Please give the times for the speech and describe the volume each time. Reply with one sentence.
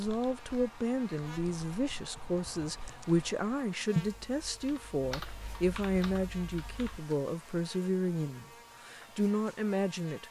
You can hear the speech from 0.0 to 10.2 s, at a steady volume.